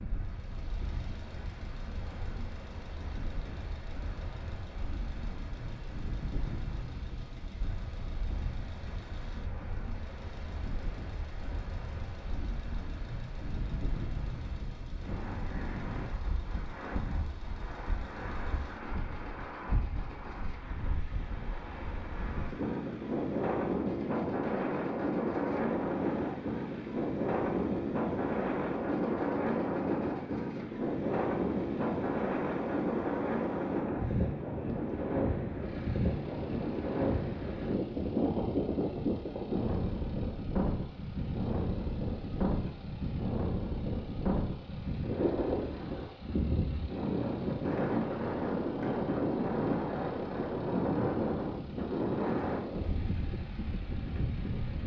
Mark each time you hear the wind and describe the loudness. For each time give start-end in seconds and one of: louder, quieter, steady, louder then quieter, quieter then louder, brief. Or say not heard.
0.0-54.8 louder.